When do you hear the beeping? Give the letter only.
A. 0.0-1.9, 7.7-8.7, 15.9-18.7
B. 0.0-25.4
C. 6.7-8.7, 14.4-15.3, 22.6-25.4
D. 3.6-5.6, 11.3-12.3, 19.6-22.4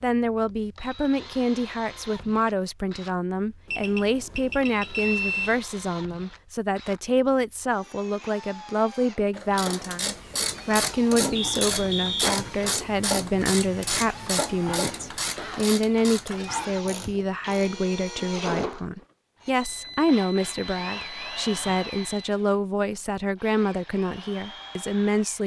D.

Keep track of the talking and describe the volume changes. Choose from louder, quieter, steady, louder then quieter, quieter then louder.
steady.